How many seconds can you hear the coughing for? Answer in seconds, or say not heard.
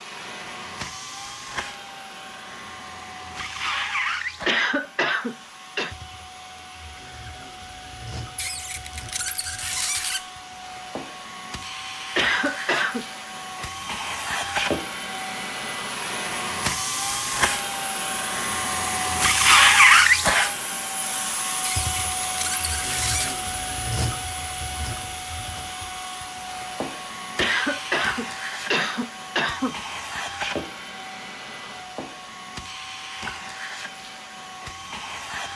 5 s.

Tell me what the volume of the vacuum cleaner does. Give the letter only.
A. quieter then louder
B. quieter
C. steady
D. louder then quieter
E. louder
D.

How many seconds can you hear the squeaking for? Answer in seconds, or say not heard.
4 s.